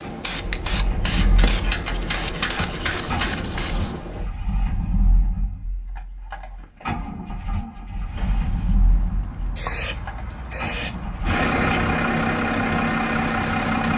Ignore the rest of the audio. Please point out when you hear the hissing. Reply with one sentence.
You can hear the hissing from 0.0 to 4.2 s and from 8.1 to 11.9 s.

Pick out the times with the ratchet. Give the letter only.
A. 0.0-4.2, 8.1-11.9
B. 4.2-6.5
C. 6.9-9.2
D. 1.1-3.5
D.